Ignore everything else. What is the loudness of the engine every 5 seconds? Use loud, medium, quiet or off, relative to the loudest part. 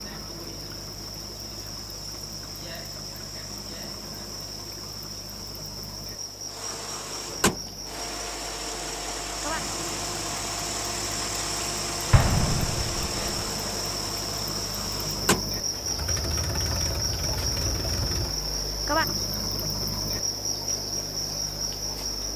quiet, loud, loud, loud, off.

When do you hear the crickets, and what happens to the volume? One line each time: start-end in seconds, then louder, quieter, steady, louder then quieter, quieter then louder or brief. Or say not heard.
0.0-22.3 louder.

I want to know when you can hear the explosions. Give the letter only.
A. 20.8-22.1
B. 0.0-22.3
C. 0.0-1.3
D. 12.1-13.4
D.